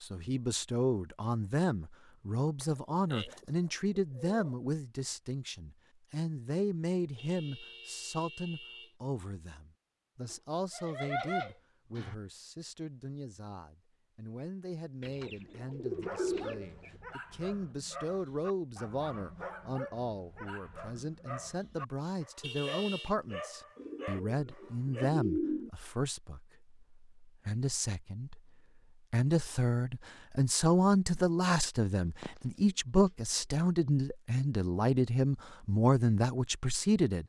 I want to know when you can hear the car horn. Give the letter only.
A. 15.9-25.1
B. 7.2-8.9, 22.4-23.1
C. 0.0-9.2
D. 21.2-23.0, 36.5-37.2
B.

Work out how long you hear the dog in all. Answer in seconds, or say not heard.
9 s.